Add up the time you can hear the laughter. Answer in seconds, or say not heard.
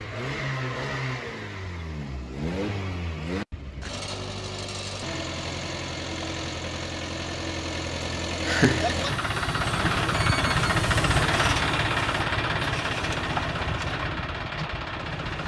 2 s.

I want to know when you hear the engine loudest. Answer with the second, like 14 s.
11 s.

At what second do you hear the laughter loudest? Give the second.
9 s.